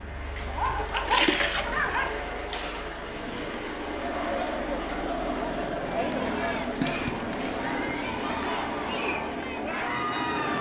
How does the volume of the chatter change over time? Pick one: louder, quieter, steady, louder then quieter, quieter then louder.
steady.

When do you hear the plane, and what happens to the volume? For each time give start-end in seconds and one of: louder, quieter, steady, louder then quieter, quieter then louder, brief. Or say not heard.
0.0-10.5 steady.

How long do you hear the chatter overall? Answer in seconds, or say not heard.
7 s.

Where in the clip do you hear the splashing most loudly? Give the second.
1 s.